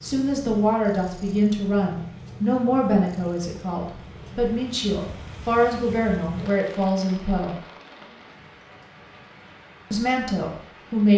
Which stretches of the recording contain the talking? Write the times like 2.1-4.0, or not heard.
0.0-7.5, 9.9-11.1.